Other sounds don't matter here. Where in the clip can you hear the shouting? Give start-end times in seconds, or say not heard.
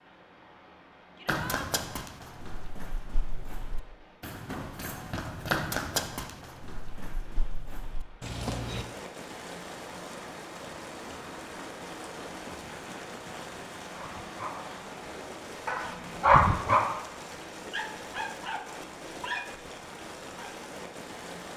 1.1-1.7.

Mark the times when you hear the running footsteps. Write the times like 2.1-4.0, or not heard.
1.2-8.8.